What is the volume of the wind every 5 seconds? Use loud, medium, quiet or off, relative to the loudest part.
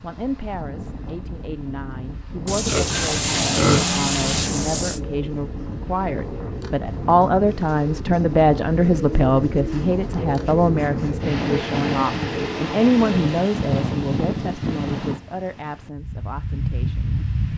medium, medium, loud, loud.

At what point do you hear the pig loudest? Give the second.
4 s.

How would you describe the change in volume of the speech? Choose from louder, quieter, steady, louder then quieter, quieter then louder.
louder then quieter.